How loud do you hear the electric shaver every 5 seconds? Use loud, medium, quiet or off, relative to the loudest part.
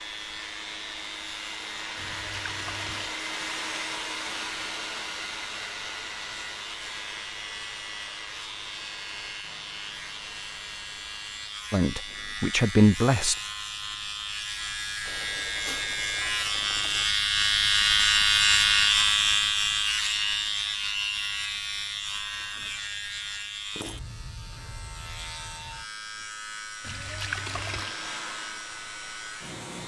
quiet, quiet, quiet, loud, medium, quiet.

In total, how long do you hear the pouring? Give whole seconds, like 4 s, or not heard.
4 s.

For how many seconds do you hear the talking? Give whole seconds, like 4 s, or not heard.
2 s.